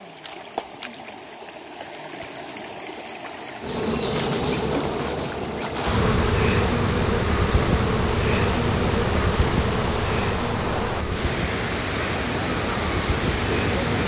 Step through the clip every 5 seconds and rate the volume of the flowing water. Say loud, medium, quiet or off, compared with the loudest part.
medium, loud, loud.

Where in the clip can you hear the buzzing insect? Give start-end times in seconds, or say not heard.
3.6-14.0.